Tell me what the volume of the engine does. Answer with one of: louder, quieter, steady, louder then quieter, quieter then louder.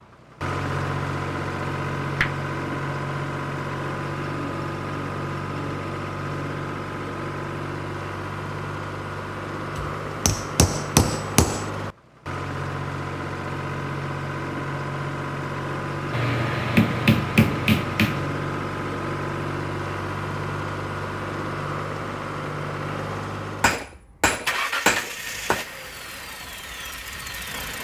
steady.